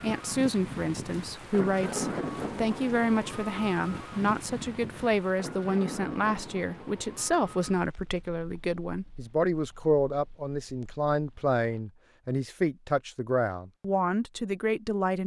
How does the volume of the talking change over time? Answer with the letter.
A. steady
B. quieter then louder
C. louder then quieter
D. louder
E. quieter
A.